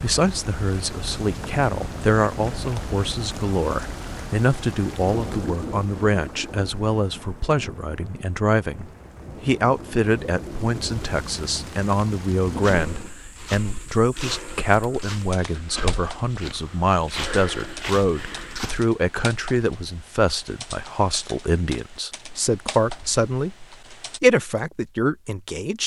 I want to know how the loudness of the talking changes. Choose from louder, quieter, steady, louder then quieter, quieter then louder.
steady.